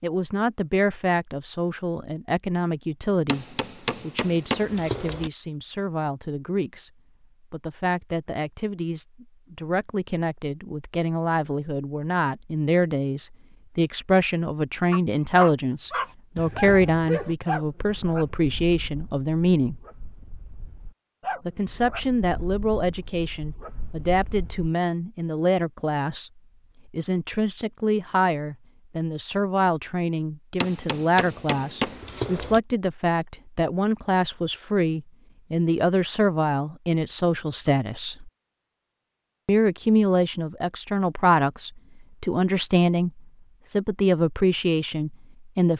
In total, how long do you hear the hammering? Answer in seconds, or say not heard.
4 s.